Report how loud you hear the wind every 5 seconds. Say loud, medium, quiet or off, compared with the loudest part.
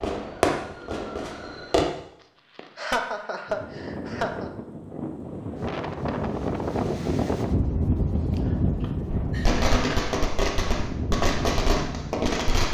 medium, loud, medium.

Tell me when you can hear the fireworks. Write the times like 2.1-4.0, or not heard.
0.0-1.9, 9.1-12.7.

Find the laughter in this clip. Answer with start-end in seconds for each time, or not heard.
2.5-4.5, 8.8-10.2.